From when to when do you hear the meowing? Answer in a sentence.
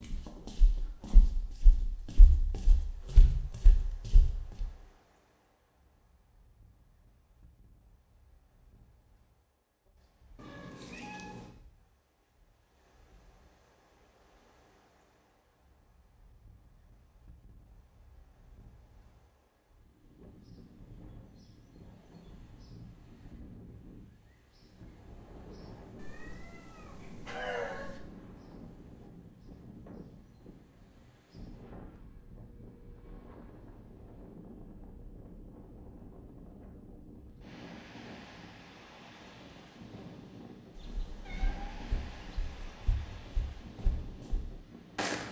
The meowing can be heard from 10.3 to 11.6 s, from 25.9 to 28.0 s and from 40.7 to 42.8 s.